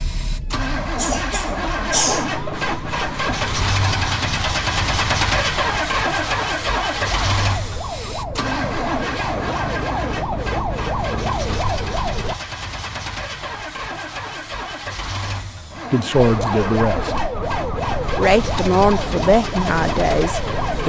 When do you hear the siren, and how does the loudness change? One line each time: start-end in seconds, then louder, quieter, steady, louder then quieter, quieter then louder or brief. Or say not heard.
0.0-12.3 louder
16.1-20.8 steady.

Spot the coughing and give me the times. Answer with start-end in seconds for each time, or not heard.
0.9-2.2.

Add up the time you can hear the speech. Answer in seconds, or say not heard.
4 s.